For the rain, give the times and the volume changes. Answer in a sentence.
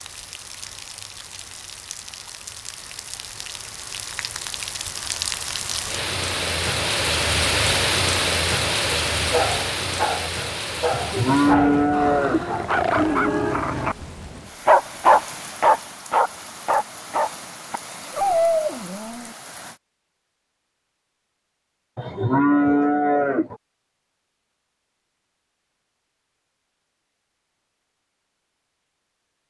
The rain can be heard from 0.0 to 19.8 s, getting louder then quieter.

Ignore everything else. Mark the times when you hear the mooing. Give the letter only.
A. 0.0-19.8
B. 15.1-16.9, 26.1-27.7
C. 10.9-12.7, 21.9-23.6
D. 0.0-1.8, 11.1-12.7
C.